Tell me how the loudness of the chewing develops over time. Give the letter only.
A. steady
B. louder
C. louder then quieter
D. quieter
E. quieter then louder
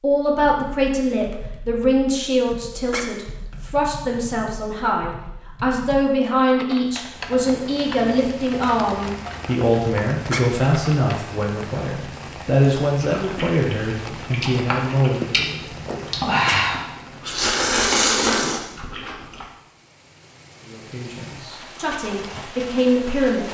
B.